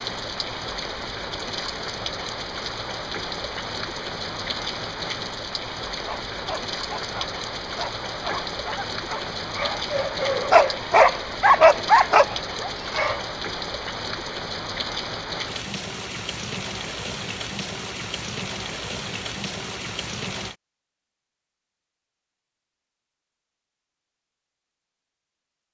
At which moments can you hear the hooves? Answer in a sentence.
You can't hear the hooves here.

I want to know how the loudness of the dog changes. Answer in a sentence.
The loudness of the dog goes up.